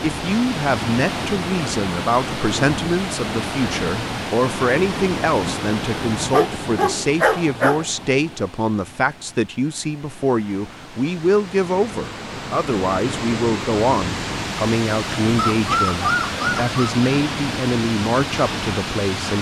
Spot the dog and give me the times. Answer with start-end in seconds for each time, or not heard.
6.2-7.8, 15.3-16.8.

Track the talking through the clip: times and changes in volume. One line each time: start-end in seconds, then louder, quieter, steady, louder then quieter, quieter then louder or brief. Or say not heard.
0.0-19.3 steady.